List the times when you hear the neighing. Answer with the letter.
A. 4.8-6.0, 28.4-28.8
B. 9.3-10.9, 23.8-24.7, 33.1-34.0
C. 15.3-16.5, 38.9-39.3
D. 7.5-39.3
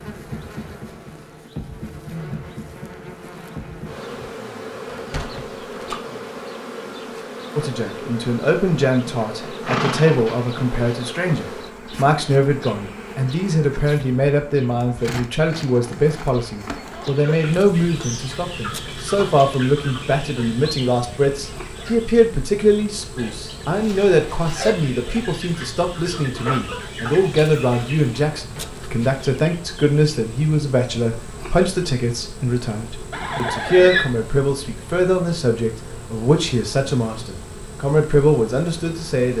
B.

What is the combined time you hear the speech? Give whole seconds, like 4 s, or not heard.
32 s.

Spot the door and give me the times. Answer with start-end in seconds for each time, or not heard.
4.8-6.0, 28.4-28.8.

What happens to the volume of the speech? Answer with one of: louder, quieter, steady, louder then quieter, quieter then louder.
steady.